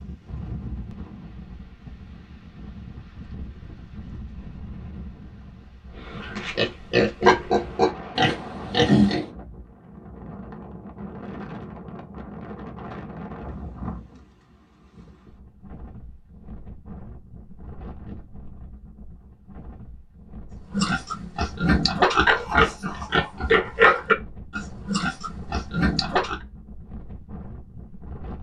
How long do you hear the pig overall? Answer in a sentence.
You can hear the pig for 9 seconds altogether.